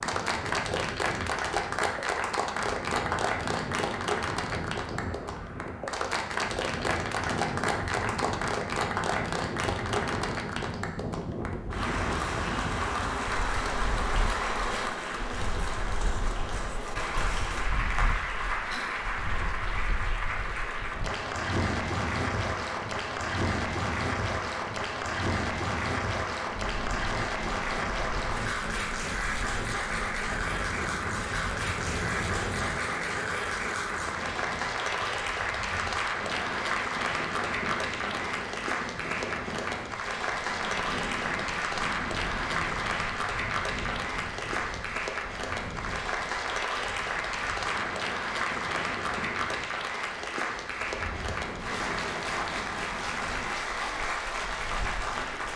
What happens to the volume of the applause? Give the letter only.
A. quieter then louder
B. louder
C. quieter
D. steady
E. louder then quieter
D.